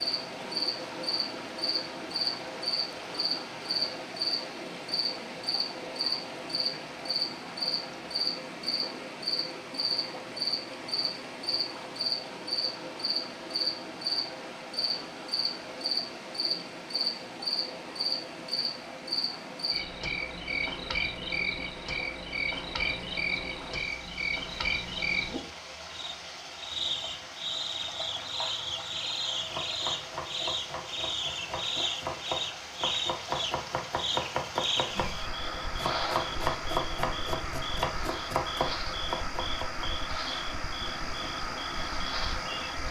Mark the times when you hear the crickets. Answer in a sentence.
The crickets can be heard from 0.0 to 42.8 s.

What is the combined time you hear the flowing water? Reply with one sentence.
You can hear the flowing water for 43 seconds altogether.